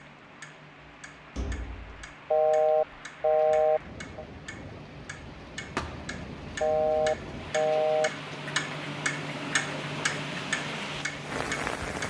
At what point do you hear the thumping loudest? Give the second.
6 s.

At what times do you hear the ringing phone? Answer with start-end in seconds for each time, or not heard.
2.3-4.2, 6.6-8.1.